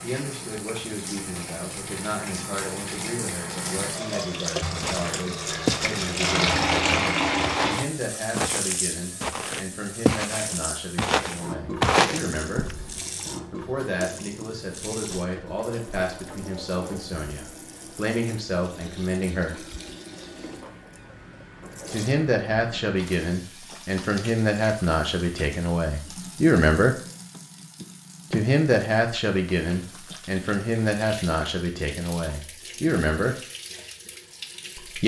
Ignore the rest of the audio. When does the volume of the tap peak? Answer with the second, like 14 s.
7 s.